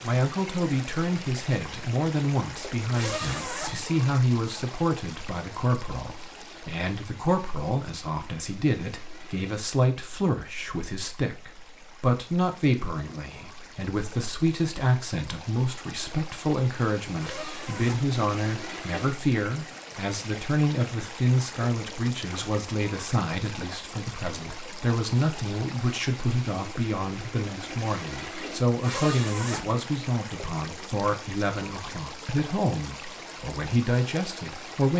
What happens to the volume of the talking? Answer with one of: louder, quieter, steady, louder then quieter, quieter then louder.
steady.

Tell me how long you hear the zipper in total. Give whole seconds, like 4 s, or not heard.
3 s.